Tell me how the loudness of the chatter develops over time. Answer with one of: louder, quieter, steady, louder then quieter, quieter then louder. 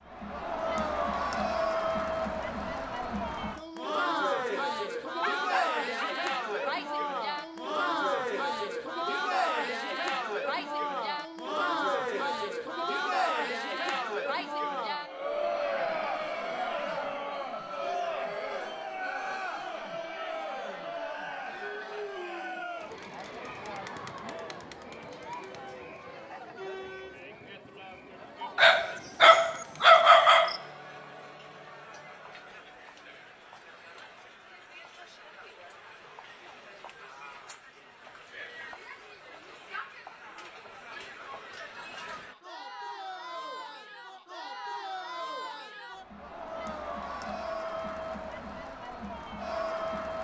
quieter then louder.